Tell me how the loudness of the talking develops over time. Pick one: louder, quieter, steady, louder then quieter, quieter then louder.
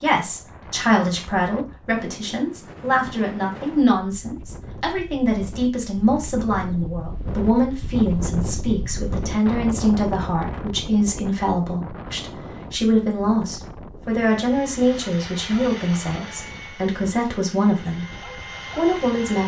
steady.